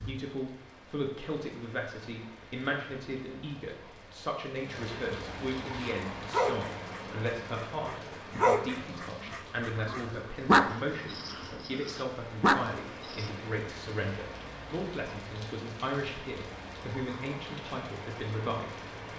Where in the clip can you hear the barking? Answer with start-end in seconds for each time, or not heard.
5.7-13.3.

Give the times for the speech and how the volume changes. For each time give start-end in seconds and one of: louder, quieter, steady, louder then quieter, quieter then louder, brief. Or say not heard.
0.1-18.9 steady.